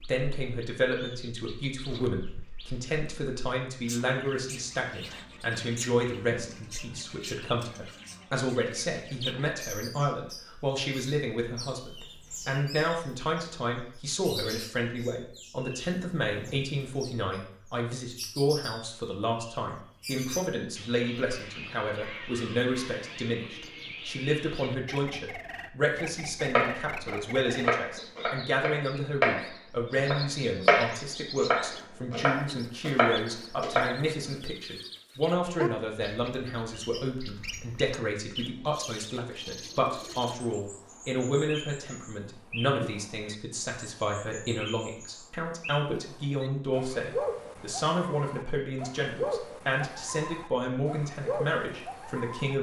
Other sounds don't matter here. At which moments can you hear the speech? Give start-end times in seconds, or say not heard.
0.1-52.5.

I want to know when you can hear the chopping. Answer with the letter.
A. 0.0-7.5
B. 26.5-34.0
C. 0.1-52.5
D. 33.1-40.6
B.